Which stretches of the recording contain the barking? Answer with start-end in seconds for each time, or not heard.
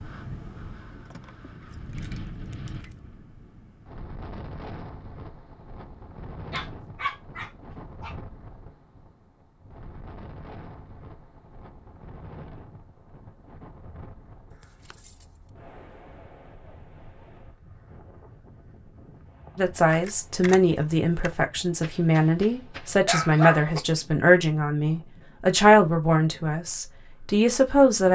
6.5-8.2, 21.8-23.8.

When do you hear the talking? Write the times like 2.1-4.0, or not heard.
19.6-28.0.